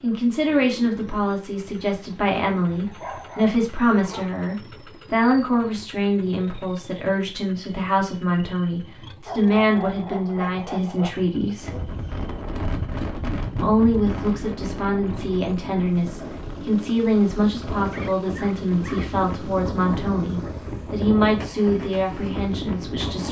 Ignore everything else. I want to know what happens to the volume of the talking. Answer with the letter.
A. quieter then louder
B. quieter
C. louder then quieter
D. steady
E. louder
D.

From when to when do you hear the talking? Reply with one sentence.
The talking can be heard from 0.0 to 11.8 s and from 13.6 to 23.2 s.